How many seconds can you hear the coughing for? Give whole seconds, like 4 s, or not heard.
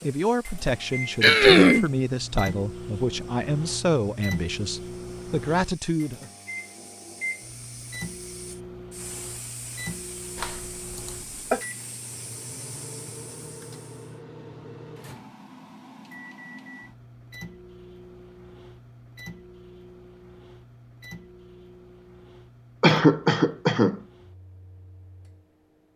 3 s.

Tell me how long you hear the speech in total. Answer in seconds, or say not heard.
6 s.